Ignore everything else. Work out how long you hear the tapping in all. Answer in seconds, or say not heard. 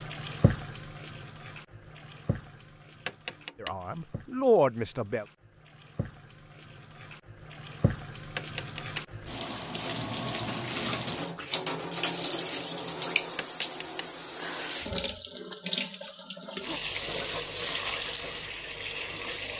2 s.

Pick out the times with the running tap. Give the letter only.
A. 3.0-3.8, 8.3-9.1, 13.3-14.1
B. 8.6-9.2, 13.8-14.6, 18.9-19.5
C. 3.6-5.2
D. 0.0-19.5
D.